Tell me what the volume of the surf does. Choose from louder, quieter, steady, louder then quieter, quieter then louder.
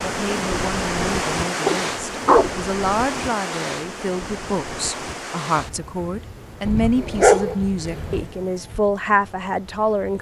quieter.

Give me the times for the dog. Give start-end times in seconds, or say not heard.
1.6-2.6, 6.7-8.2.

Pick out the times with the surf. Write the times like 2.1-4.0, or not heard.
0.0-10.1.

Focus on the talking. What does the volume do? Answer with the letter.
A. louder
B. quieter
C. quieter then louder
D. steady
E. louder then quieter
A.